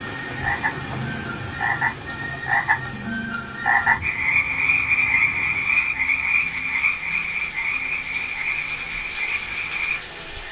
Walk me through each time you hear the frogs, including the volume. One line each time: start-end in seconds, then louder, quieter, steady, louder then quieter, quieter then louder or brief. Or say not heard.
0.0-10.4 louder then quieter.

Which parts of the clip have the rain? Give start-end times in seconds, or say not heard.
0.0-10.4.